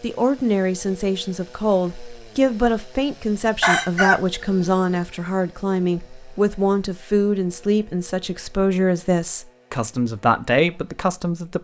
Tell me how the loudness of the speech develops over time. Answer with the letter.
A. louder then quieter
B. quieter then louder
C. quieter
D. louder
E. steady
E.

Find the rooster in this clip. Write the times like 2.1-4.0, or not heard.
3.6-5.0.